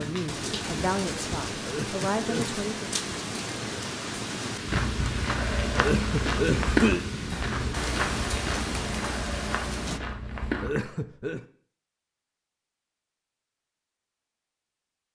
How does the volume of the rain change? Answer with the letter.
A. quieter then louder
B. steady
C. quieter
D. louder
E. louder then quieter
B.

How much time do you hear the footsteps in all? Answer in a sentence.
You can hear the footsteps for 6 seconds altogether.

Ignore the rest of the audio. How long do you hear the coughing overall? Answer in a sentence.
The coughing can be heard for 3 seconds in total.